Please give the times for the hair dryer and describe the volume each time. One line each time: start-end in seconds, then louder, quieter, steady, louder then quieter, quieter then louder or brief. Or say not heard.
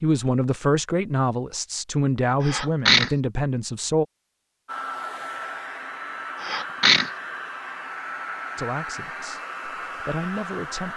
4.7-10.9 steady.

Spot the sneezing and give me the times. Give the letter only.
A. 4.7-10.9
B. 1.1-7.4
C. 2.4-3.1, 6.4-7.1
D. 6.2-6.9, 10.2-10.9
C.